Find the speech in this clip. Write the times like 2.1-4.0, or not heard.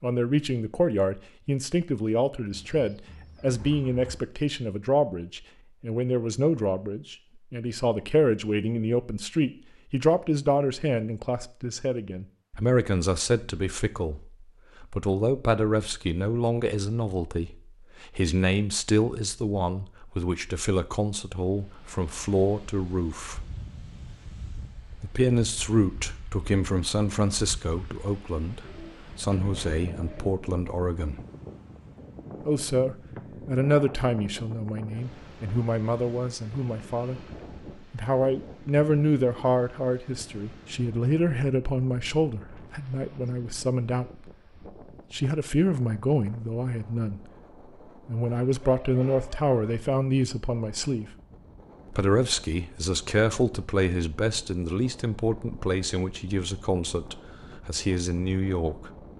0.0-23.4, 24.9-31.2, 32.5-44.3, 45.1-47.2, 48.0-51.1, 51.9-58.9.